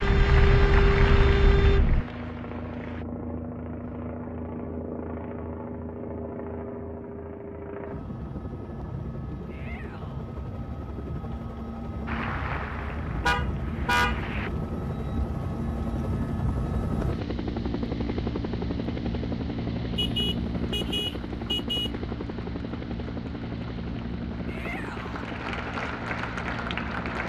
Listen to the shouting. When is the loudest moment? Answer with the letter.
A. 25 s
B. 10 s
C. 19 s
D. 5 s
A.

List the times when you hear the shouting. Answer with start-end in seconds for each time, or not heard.
9.4-10.3, 24.4-25.2.